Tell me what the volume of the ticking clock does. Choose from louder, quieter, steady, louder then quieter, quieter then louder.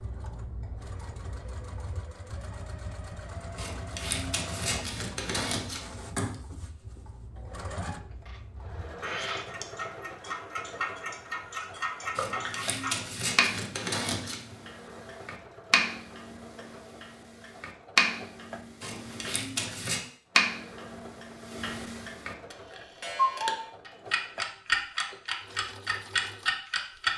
louder.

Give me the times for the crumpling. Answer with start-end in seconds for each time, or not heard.
3.5-6.3, 12.2-14.6, 18.8-20.1.